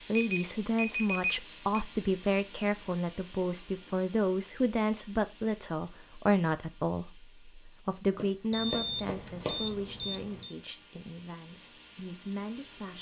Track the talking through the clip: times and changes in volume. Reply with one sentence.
You can hear the talking from 0.1 to 12.9 s, getting quieter.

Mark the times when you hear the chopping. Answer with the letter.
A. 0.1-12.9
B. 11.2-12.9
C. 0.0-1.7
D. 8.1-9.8
D.